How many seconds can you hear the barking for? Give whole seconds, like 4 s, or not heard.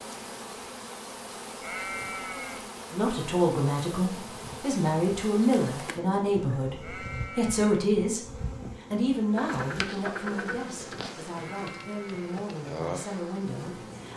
not heard.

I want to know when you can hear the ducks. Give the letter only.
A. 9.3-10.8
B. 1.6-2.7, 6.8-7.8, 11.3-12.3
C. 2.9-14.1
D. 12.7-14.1
A.